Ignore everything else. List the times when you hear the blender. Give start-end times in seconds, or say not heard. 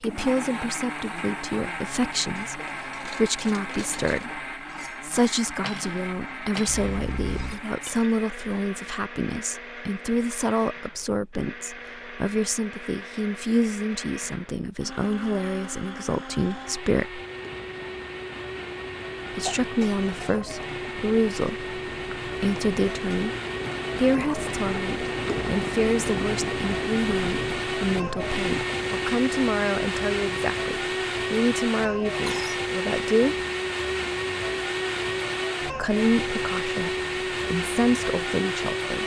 0.0-39.0.